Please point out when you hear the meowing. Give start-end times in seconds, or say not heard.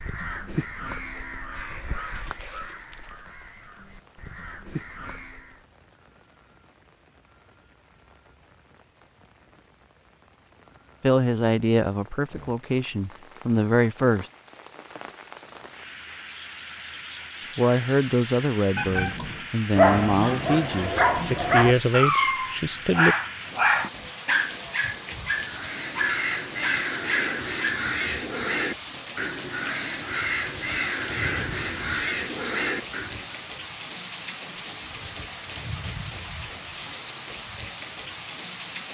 18.8-19.5.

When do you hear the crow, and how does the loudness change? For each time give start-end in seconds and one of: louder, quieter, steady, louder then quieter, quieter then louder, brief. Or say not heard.
0.0-5.6 quieter then louder
25.4-33.4 steady.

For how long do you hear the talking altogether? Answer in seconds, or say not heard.
9 s.